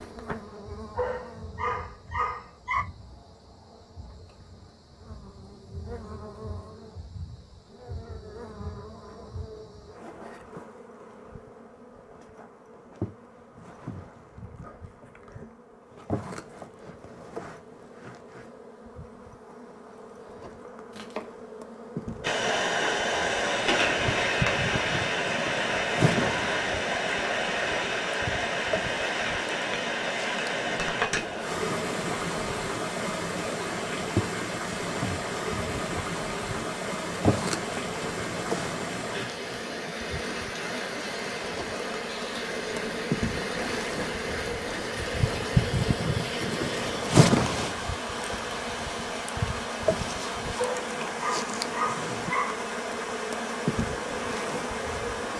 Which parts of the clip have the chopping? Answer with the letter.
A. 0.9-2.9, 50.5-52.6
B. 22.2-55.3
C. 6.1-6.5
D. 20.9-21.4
D.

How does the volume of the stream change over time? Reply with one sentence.
The volume of the stream goes down.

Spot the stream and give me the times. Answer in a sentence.
The stream can be heard from 22.2 to 55.3 s.